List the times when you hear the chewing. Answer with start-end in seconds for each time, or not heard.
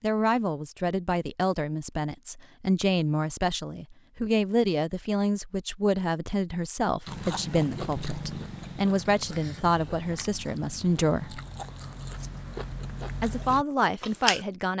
7.0-14.4.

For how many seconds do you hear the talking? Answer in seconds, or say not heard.
13 s.